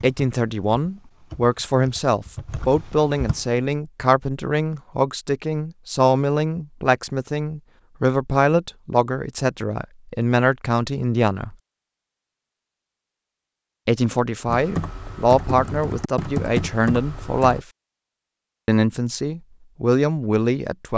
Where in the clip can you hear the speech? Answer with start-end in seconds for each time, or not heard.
0.0-11.6, 13.8-17.6, 18.6-20.9.